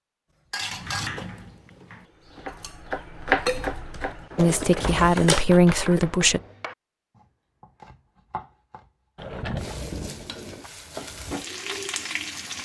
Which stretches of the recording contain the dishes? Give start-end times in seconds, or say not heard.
0.5-6.0.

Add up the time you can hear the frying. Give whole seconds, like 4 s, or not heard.
3 s.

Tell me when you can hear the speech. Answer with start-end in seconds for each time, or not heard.
4.3-6.4.